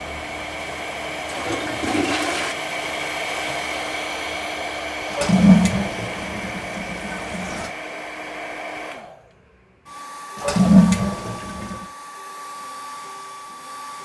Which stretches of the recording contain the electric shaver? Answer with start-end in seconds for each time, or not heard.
not heard.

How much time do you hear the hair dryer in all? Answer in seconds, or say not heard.
14 s.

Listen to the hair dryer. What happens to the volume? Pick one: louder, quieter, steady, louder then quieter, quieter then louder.
quieter.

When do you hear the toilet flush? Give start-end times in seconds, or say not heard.
1.2-2.5, 5.1-7.7, 10.4-11.8.